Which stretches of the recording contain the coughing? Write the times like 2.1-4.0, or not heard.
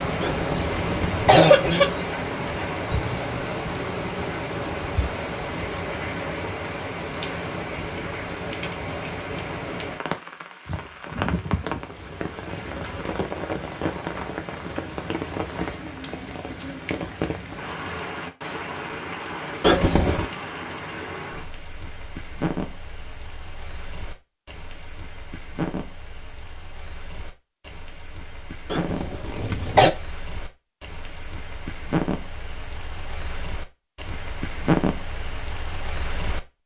0.2-1.9, 19.6-20.3, 28.7-29.9.